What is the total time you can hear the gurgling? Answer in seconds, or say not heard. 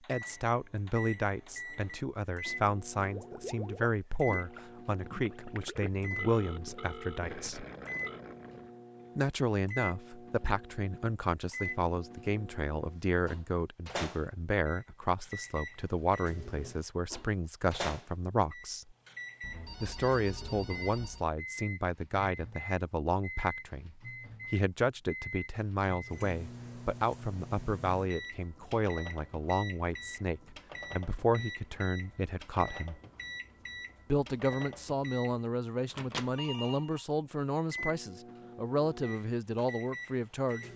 6 s.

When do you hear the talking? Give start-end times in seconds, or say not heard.
0.1-7.7, 9.2-18.9, 19.8-33.0, 34.1-40.6.